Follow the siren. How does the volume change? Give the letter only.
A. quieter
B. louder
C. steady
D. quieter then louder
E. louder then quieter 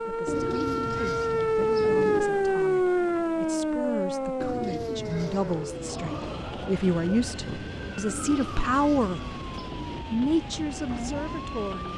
A.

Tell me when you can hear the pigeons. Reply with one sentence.
You can hear the pigeons from 0.2 to 2.2 s, from 4.4 to 6.4 s and from 8.1 to 10.1 s.